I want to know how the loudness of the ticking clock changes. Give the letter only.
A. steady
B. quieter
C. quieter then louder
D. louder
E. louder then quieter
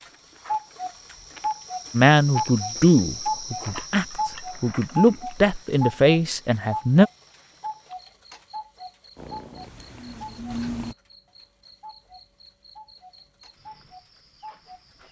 B.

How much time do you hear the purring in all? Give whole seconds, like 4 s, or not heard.
2 s.